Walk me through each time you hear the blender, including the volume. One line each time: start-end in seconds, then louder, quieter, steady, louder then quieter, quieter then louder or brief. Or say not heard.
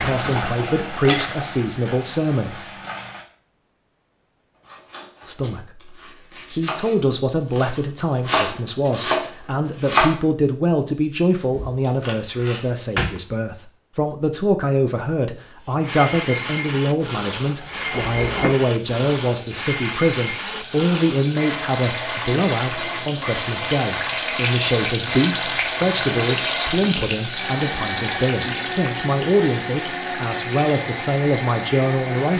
15.7-32.3 steady.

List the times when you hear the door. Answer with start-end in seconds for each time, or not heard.
11.5-13.2, 17.9-18.6.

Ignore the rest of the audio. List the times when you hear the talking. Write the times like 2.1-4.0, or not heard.
0.0-2.6, 5.2-32.3.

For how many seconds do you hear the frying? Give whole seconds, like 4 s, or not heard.
18 s.